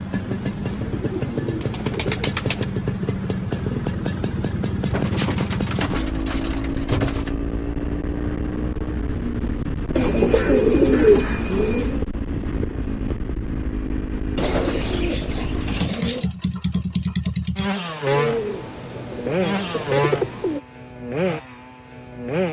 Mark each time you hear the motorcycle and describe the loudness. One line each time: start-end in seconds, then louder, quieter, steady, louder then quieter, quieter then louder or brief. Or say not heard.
0.0-22.4 steady.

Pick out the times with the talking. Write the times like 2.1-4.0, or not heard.
not heard.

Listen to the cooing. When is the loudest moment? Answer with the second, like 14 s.
11 s.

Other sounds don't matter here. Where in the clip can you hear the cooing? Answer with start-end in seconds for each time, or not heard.
0.2-2.6, 4.9-7.3, 9.9-11.9, 14.3-16.3, 18.1-20.6.